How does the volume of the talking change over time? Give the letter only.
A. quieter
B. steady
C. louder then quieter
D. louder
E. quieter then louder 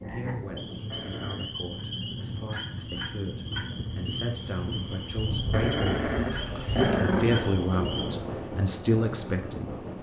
D.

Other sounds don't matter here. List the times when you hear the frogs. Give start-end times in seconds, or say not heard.
0.0-8.2.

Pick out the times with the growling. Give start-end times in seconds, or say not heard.
0.9-1.5, 5.5-7.4.